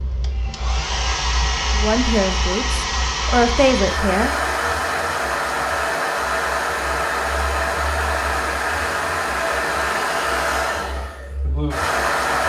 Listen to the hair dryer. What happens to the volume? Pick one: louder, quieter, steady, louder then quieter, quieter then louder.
steady.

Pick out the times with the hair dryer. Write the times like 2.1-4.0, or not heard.
0.0-12.4.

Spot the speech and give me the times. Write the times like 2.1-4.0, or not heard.
1.7-4.3.